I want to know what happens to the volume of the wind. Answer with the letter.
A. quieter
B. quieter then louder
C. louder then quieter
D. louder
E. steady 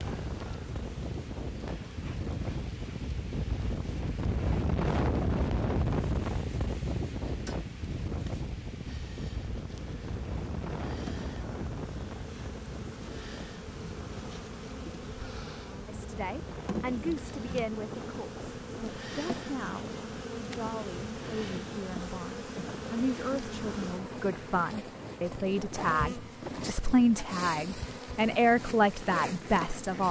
A.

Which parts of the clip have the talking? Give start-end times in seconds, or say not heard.
15.8-30.0.